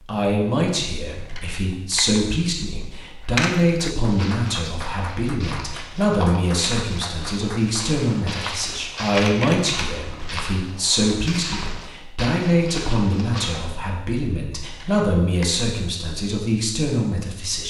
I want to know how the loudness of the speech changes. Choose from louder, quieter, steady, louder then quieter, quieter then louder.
steady.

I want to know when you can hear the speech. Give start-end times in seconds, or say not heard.
0.1-17.6.